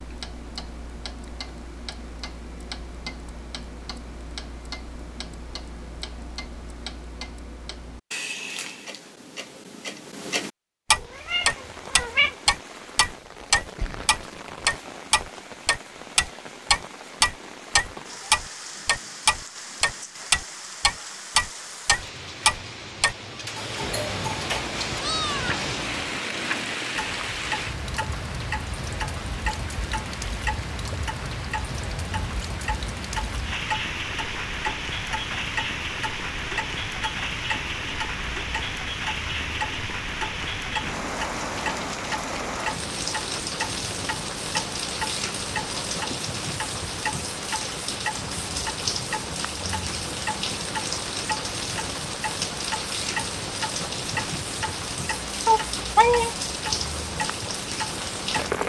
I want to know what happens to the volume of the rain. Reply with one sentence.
The volume of the rain goes up.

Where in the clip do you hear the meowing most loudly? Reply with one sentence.
The volume of the meowing peaks at 56 seconds.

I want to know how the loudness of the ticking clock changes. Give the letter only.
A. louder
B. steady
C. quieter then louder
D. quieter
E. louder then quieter
E.